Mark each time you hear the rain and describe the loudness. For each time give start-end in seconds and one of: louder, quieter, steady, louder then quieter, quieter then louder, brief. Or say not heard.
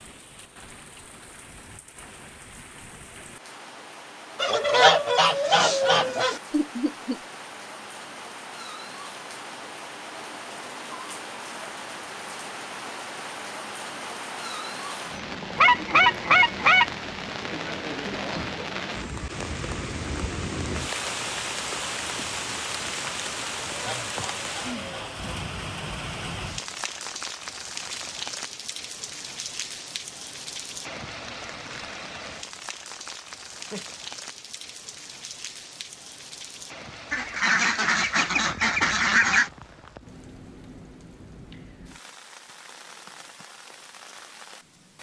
0.0-44.9 louder then quieter.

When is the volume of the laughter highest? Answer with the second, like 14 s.
7 s.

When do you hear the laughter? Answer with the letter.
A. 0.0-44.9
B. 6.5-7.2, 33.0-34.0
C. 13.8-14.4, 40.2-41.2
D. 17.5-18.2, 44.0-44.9
B.